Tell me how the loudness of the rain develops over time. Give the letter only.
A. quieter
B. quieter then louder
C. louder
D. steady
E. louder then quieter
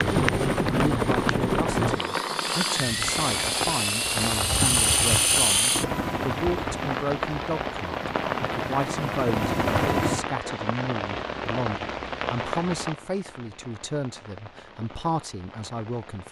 A.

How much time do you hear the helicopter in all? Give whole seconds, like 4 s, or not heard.
10 s.